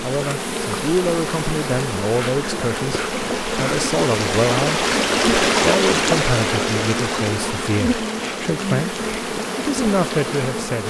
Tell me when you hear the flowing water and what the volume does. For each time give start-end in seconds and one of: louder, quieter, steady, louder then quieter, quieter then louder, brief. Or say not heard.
0.0-10.8 louder then quieter.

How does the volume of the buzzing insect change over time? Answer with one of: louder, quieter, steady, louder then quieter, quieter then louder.
steady.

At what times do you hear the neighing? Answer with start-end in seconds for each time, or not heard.
not heard.